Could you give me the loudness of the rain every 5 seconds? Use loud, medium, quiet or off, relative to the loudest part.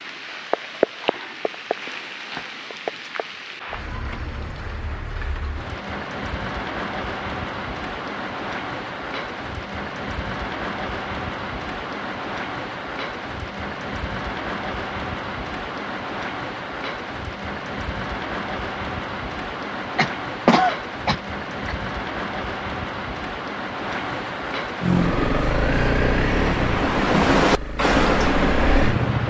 medium, medium, medium, medium, medium, loud.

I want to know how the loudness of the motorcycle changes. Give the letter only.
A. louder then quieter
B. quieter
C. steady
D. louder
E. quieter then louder
E.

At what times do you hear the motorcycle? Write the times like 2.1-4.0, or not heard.
24.8-29.2.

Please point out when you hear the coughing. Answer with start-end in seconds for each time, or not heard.
19.9-21.8.